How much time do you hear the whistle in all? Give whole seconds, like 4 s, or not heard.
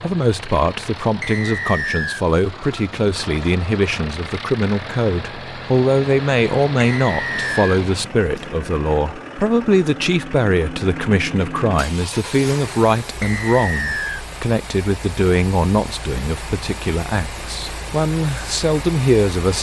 3 s.